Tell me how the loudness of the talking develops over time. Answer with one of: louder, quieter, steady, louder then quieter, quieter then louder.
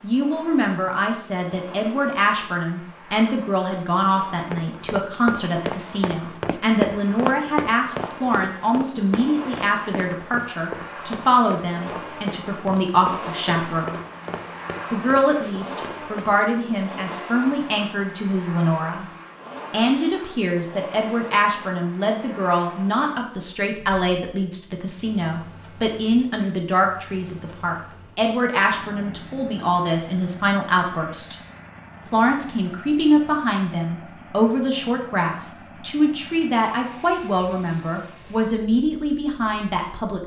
steady.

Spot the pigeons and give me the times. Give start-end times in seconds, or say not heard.
not heard.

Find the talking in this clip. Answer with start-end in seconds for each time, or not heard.
0.0-14.0, 14.9-19.1, 19.7-31.4, 32.1-40.2.